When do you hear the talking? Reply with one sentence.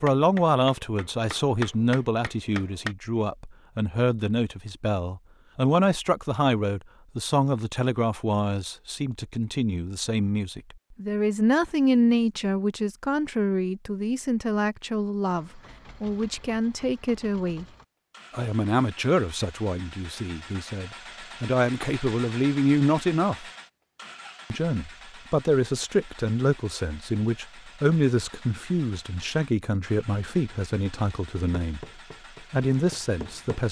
The talking can be heard from 0.0 to 17.6 s, from 18.3 to 23.4 s, from 24.5 to 31.9 s and from 32.5 to 33.6 s.